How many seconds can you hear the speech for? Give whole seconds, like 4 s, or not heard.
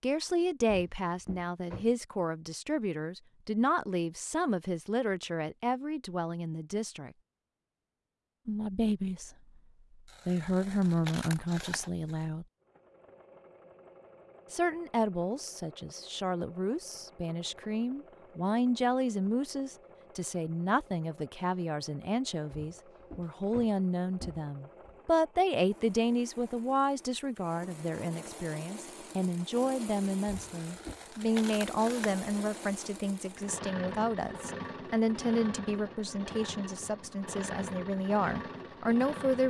35 s.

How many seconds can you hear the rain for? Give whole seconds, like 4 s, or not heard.
not heard.